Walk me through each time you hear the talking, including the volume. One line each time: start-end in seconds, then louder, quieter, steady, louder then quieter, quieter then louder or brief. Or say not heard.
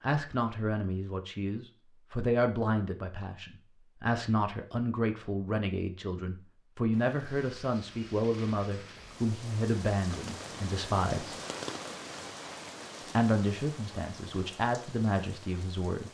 0.0-11.4 steady
13.2-16.0 brief.